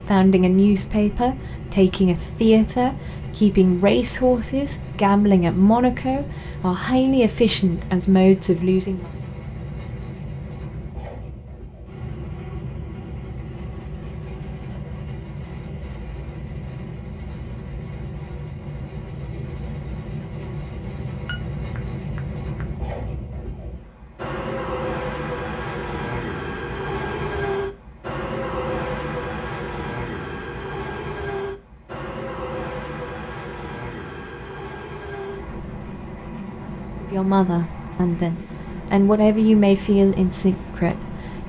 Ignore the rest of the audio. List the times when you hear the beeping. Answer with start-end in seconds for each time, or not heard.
21.2-22.6.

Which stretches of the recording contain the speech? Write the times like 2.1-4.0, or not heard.
0.1-9.1, 37.0-41.4.